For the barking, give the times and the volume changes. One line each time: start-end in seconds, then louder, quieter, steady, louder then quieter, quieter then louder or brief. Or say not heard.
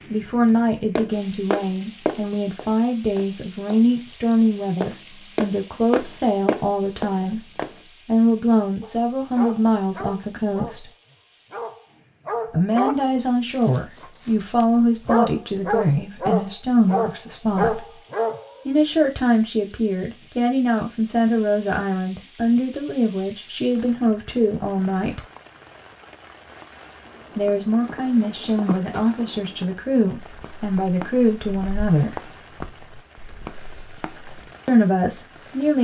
8.8-18.6 louder.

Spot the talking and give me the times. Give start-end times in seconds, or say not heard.
0.1-10.8, 12.4-18.0, 18.6-25.2, 27.4-32.3, 34.6-35.7.